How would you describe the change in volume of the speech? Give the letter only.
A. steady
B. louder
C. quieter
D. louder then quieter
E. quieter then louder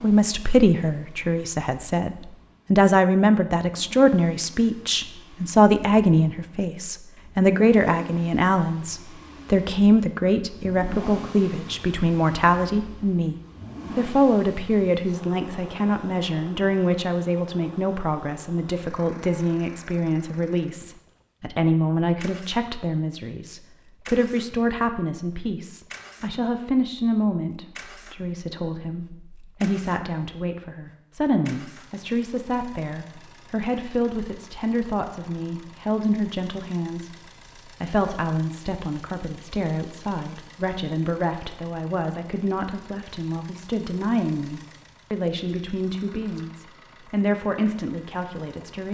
C.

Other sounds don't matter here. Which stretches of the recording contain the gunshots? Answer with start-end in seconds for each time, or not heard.
not heard.